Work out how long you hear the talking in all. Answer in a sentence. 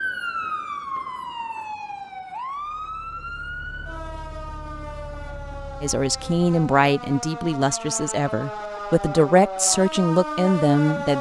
The talking can be heard for 5 seconds in total.